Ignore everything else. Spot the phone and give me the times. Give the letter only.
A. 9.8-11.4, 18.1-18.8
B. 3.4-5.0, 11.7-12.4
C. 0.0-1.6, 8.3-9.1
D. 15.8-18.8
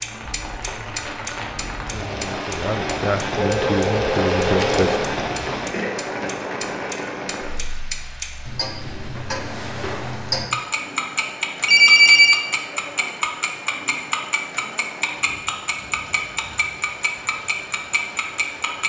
B.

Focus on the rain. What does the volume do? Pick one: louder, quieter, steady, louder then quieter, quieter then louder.
quieter.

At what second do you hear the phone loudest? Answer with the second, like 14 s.
12 s.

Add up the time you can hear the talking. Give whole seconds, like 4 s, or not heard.
3 s.